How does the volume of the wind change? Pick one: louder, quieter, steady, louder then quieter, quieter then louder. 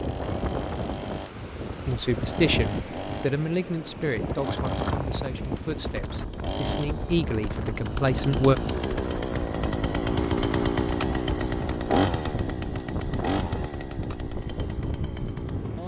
steady.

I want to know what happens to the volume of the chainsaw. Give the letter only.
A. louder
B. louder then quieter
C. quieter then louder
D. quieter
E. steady
B.